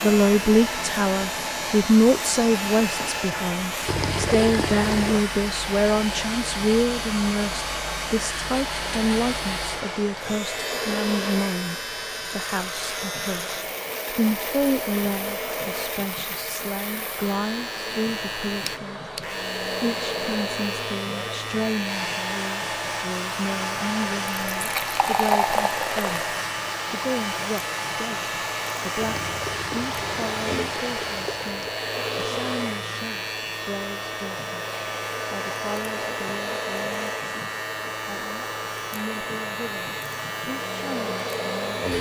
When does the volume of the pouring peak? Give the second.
25 s.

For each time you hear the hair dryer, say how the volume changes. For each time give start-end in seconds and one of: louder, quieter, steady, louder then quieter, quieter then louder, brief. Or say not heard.
0.0-41.9 steady.